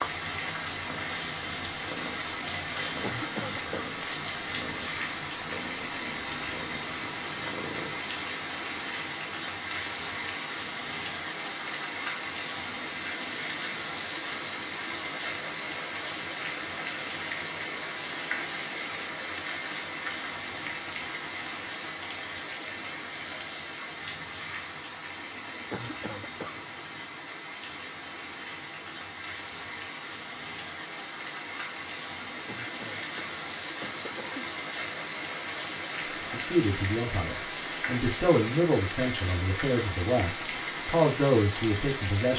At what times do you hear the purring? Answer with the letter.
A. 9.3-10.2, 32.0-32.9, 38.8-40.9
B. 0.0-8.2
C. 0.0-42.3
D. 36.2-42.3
B.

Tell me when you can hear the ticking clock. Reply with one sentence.
The ticking clock can't be heard in this clip.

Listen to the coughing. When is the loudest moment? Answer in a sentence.
The volume of the coughing peaks at 3 seconds.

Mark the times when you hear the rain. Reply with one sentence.
The rain can be heard from 0.0 to 42.3 s.